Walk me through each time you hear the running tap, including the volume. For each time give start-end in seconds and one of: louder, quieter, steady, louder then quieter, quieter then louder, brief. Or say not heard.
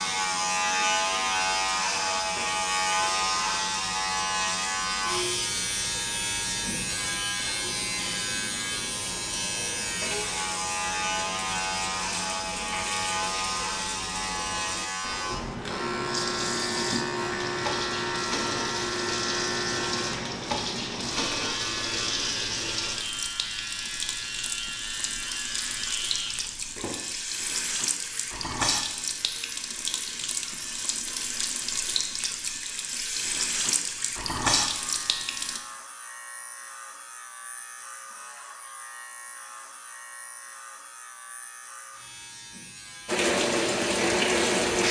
0.0-35.6 louder
43.0-44.8 brief.